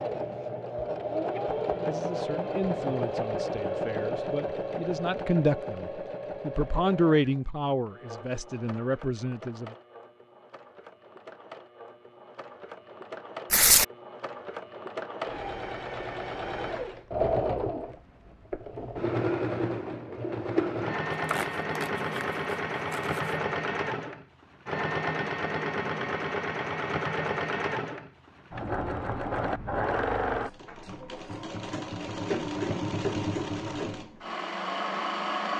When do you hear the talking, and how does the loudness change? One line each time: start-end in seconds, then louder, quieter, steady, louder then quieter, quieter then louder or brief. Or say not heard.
1.9-9.8 louder then quieter.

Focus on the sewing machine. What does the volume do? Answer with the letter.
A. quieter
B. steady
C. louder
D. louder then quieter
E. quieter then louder
E.